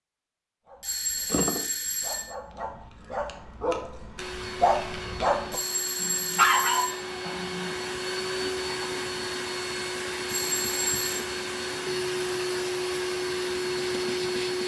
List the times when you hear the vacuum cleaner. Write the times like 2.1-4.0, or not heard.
4.2-14.6.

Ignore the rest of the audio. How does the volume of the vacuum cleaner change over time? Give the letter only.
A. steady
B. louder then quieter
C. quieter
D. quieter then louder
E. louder
E.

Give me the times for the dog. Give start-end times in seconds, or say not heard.
0.7-7.9.